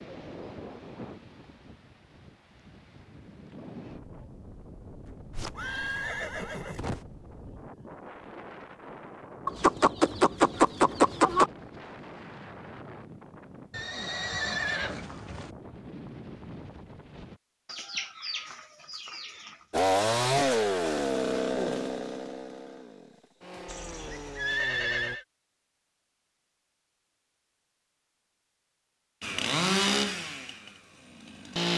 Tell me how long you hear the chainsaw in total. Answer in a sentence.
You can hear the chainsaw for 8 seconds altogether.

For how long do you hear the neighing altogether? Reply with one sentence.
You can hear the neighing for 5 seconds altogether.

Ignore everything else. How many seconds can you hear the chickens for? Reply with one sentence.
The chickens can be heard for 4 seconds in total.